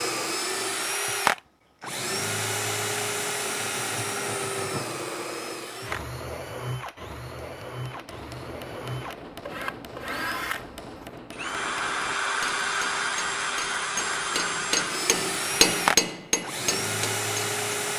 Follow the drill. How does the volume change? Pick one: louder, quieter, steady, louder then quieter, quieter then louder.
quieter then louder.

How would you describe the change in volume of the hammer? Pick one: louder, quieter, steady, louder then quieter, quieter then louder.
louder.